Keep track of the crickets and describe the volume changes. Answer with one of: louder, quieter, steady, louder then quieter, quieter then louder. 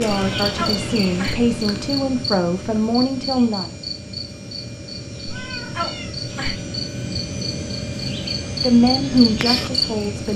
quieter then louder.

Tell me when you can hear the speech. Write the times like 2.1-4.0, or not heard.
0.0-3.6, 8.6-10.3.